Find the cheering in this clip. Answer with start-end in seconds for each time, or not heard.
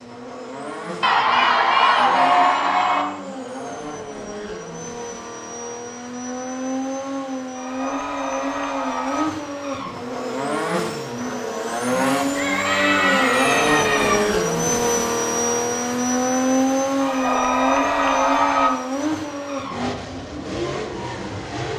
1.0-3.0, 7.5-9.2, 12.3-14.2, 16.9-18.7.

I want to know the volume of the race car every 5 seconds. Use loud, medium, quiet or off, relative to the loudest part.
medium, medium, loud, loud, medium.